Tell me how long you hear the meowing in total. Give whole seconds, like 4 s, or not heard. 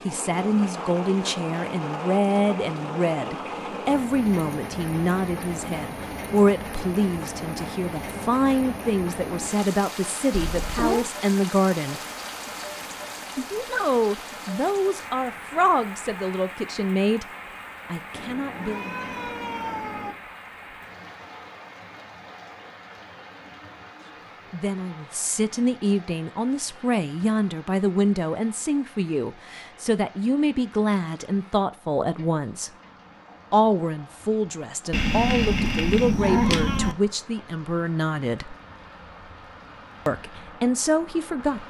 5 s.